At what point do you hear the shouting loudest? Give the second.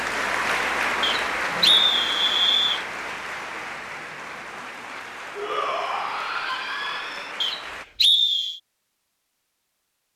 6 s.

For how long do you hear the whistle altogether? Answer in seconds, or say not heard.
3 s.